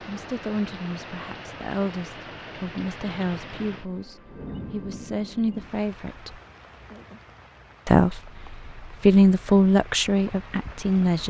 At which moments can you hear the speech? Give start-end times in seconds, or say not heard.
0.1-6.4, 7.8-11.2.